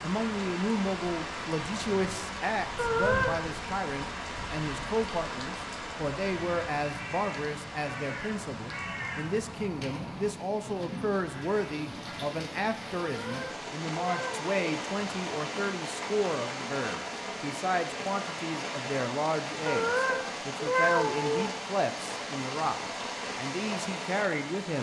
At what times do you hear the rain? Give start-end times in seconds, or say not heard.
0.0-24.7.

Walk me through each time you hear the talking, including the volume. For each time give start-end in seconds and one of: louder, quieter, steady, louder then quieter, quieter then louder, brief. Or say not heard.
0.0-24.7 steady.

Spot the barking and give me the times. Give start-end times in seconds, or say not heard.
not heard.